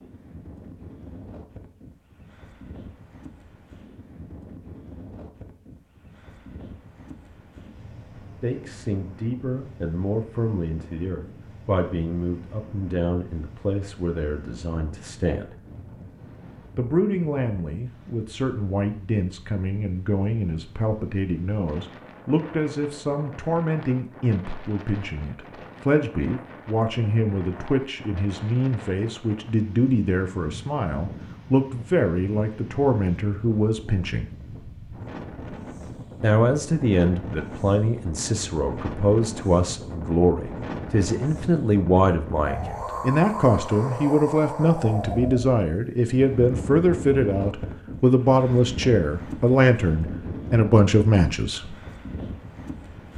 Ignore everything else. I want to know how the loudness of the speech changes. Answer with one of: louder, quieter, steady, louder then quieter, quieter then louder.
louder.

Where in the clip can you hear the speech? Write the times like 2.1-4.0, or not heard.
8.4-15.6, 16.8-34.3, 36.2-51.8.